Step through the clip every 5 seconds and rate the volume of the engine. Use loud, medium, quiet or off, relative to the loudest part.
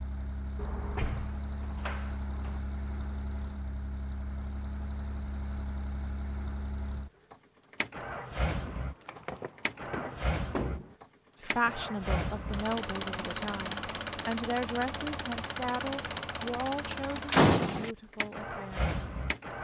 medium, loud, loud, loud.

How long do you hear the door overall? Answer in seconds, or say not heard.
5 s.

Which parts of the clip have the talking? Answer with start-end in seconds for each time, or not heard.
11.4-19.0.